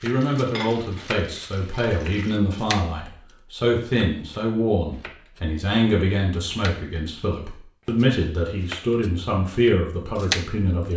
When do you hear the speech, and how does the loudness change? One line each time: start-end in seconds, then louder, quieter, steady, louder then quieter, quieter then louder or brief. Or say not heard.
0.0-10.9 steady.